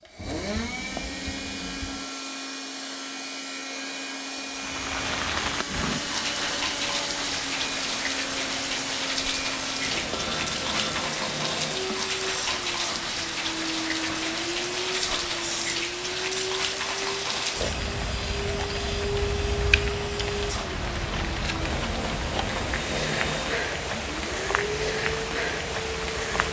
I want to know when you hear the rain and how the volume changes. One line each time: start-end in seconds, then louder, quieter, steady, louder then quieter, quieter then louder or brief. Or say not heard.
4.5-26.4 steady.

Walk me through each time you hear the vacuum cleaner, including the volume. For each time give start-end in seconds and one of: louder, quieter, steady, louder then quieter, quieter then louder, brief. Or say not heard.
0.0-26.4 steady.